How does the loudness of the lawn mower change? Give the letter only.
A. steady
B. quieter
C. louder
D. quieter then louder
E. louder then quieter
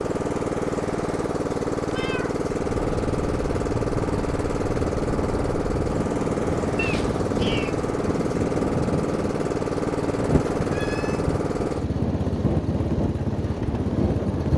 A.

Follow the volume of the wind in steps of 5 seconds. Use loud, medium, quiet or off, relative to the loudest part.
medium, loud, loud.